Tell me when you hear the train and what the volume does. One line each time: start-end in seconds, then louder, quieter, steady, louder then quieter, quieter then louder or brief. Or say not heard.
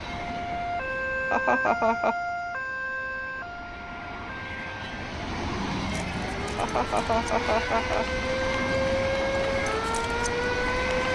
0.0-11.1 louder.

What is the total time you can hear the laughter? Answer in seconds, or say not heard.
2 s.